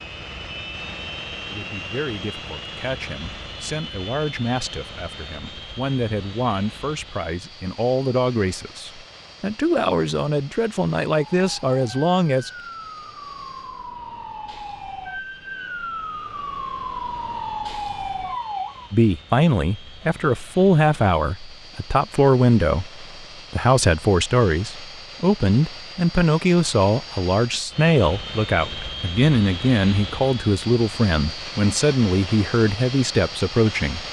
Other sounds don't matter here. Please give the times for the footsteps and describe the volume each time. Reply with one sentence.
You can't hear the footsteps here.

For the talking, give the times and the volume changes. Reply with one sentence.
You can hear the talking from 1.5 to 12.5 s, getting louder; and from 18.9 to 34.0 s, at a steady volume.